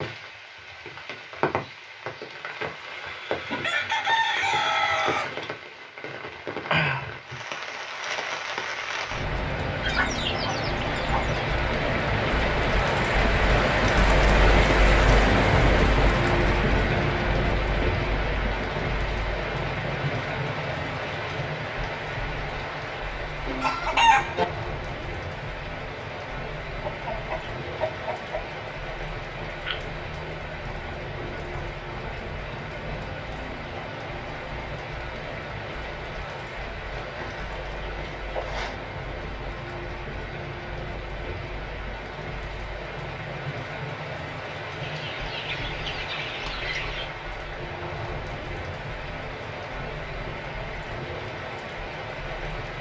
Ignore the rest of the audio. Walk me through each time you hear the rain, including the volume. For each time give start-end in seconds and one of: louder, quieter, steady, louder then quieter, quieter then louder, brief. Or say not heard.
0.0-52.7 louder then quieter.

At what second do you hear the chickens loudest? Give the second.
24 s.